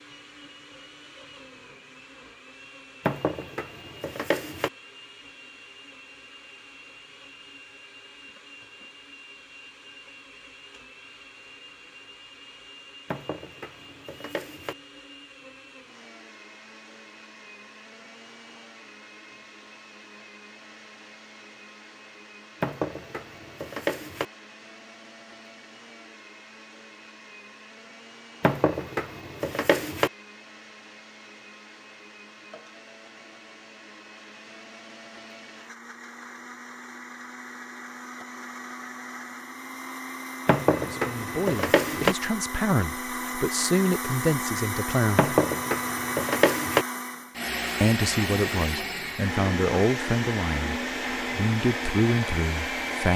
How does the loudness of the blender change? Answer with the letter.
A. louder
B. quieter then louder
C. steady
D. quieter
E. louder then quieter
A.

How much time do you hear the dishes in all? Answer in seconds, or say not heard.
10 s.